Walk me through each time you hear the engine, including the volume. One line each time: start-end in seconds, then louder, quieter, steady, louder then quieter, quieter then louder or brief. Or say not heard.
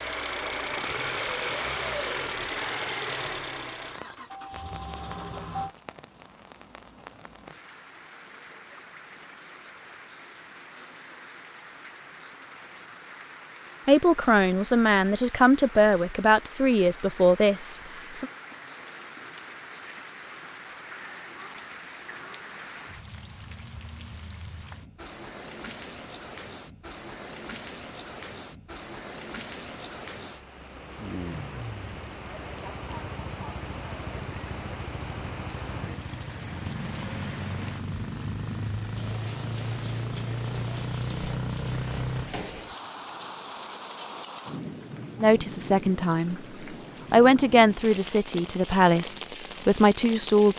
0.0-5.7 quieter
31.2-42.3 louder.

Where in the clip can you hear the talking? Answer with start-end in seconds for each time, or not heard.
13.8-18.2, 45.2-46.4, 47.1-50.5.